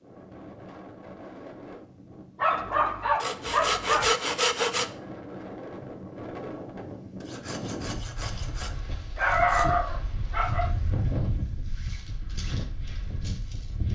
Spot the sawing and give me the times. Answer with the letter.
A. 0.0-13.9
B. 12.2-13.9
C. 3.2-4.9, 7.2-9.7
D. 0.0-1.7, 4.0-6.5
C.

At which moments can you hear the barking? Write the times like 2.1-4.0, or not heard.
2.4-4.2, 9.2-10.7.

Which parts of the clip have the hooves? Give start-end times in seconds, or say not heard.
12.2-13.9.